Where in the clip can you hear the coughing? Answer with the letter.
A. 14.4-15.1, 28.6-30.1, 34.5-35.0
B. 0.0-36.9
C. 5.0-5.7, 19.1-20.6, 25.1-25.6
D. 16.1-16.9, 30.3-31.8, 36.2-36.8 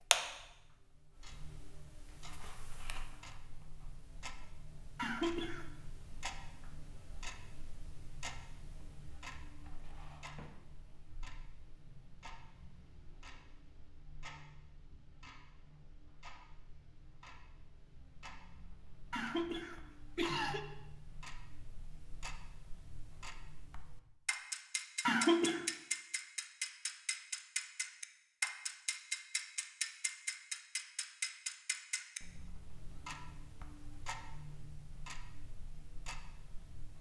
C.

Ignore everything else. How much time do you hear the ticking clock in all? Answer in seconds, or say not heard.
37 s.